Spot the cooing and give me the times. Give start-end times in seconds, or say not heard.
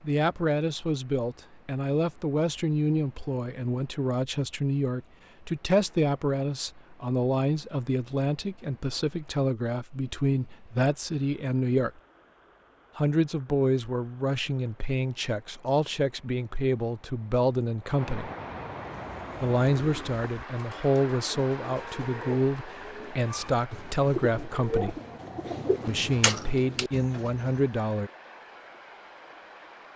18.8-27.7.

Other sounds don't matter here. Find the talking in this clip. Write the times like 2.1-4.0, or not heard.
0.0-11.9, 12.9-18.3, 19.4-25.0, 25.9-28.1.